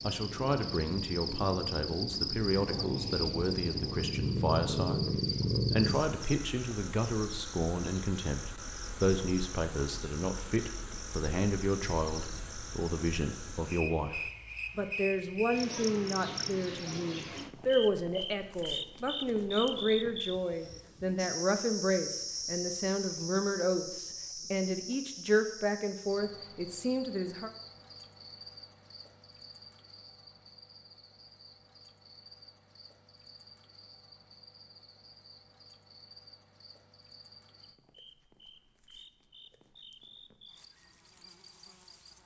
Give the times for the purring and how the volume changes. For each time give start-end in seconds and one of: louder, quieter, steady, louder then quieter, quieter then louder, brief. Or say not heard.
0.0-6.0 louder.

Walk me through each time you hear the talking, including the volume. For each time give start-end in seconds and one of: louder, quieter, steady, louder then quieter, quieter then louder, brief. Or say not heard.
0.0-27.5 steady.